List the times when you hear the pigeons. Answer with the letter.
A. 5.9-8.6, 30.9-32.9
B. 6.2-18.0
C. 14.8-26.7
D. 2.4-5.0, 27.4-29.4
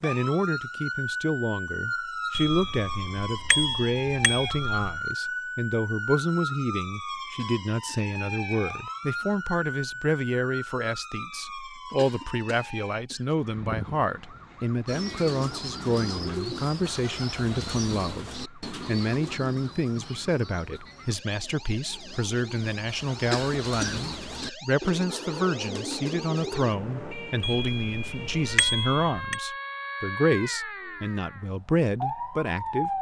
C.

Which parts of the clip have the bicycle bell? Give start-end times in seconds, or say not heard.
2.4-5.0, 27.4-29.4.